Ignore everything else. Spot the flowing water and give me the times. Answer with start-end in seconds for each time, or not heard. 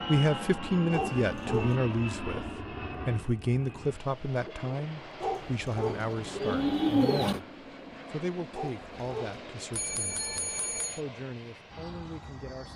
not heard.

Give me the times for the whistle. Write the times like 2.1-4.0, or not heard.
not heard.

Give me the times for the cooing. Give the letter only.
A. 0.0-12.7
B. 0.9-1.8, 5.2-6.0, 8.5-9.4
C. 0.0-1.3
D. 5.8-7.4
D.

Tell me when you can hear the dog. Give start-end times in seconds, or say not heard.
0.9-1.8, 5.2-6.0, 8.5-9.4.